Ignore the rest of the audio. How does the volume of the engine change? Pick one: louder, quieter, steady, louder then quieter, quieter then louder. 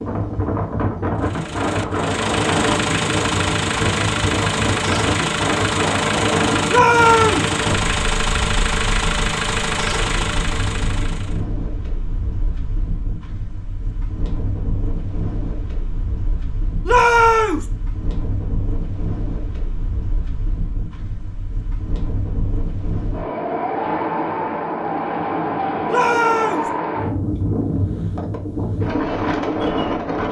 steady.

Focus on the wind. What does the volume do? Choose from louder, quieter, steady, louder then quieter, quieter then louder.
quieter then louder.